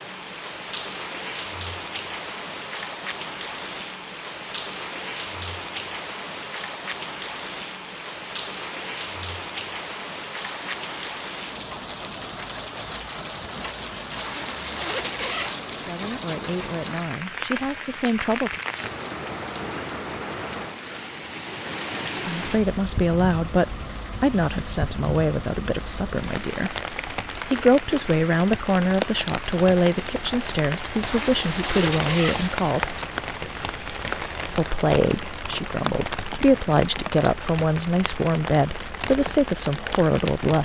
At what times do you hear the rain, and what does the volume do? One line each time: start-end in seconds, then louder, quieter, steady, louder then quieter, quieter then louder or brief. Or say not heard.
0.0-40.6 steady.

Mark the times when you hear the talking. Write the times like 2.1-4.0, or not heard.
15.8-18.6, 22.2-26.8, 27.4-33.0, 34.5-40.6.